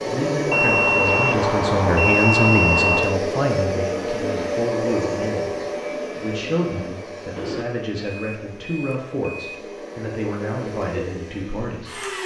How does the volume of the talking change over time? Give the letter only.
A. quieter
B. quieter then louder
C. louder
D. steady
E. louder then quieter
A.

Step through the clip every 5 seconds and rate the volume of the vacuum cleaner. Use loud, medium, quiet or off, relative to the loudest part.
loud, medium, medium.